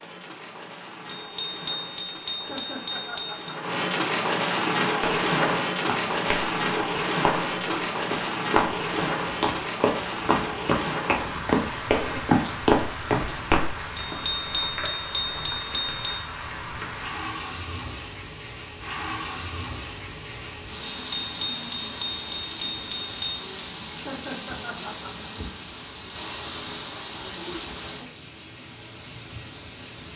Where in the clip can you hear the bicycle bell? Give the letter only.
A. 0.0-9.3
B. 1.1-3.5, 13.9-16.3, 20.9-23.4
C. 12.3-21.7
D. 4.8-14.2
B.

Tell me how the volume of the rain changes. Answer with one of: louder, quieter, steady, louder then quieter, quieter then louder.
quieter.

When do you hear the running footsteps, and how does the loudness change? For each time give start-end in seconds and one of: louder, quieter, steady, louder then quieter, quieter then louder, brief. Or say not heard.
4.8-14.2 louder.